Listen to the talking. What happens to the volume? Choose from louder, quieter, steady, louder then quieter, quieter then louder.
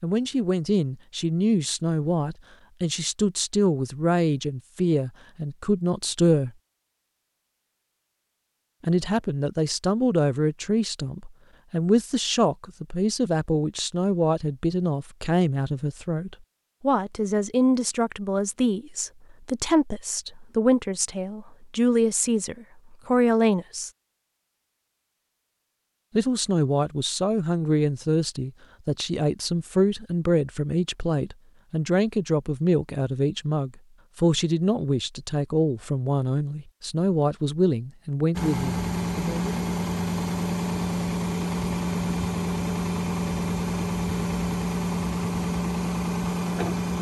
steady.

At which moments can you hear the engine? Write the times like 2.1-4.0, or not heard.
38.3-46.9.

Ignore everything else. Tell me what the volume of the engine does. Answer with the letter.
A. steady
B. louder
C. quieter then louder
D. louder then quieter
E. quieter
A.